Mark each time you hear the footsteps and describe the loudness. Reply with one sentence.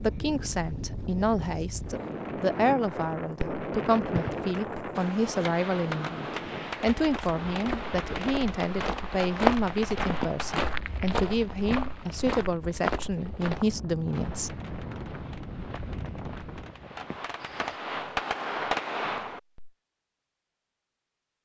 The footsteps can be heard from 7.0 to 17.8 s, getting louder then quieter.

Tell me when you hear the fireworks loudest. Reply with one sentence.
The volume of the fireworks peaks at 19 seconds.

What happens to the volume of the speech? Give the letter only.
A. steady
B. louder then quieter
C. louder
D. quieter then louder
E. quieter
A.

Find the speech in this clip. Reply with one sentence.
The speech can be heard from 0.0 to 14.6 s.